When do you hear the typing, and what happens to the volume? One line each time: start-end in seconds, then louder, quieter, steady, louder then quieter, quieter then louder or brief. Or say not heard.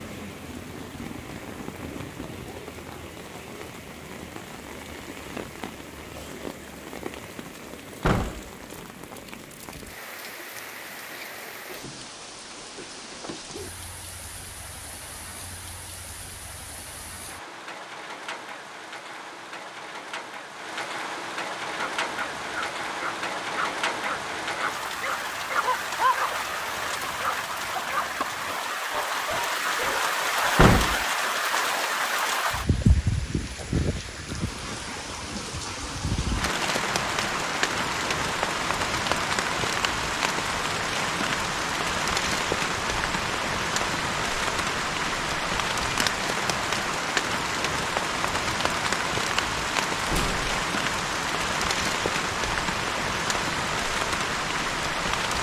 not heard.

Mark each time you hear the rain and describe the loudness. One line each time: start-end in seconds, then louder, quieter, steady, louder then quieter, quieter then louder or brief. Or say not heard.
0.0-55.3 louder.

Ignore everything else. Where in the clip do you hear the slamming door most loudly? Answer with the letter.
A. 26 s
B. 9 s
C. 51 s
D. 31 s
D.